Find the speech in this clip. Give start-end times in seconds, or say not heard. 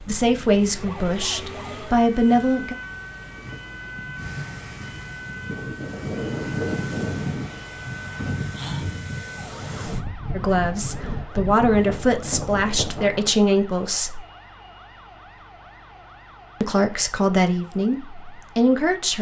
0.1-2.8, 10.3-14.2, 16.6-19.1.